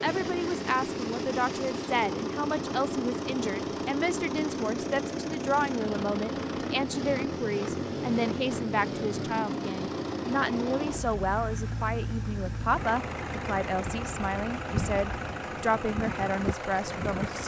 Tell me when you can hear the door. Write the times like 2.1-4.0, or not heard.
not heard.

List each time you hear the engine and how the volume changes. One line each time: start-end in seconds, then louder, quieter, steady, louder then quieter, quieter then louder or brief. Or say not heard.
0.0-17.4 steady.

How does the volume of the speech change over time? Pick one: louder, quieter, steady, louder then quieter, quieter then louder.
steady.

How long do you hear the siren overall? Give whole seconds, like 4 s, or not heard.
not heard.